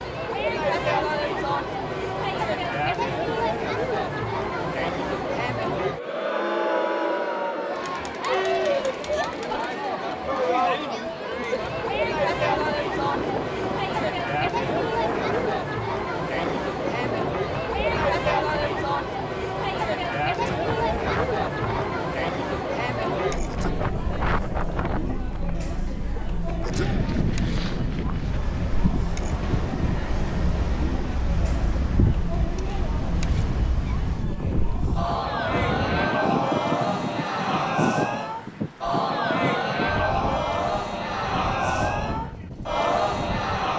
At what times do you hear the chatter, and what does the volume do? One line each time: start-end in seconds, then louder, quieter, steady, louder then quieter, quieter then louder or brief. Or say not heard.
0.0-43.7 quieter then louder.